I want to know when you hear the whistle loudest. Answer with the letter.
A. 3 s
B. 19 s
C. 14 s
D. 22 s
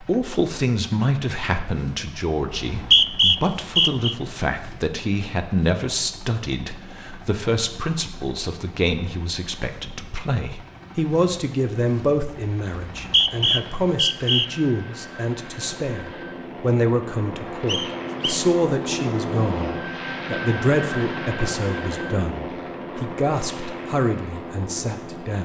A.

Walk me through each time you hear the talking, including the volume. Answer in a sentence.
You can hear the talking from 0.0 to 25.4 s, at a steady volume.